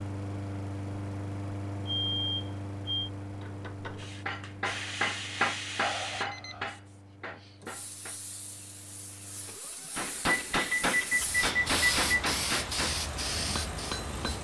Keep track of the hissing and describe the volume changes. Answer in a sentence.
The volume of the hissing goes down, then up.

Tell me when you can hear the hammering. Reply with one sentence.
The hammering can be heard from 3.4 to 8.2 s and from 9.9 to 14.3 s.